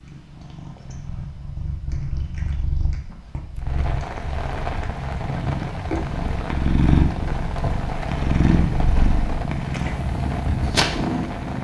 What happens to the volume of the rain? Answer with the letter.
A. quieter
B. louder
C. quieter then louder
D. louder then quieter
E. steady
E.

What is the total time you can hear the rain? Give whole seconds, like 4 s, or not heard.
8 s.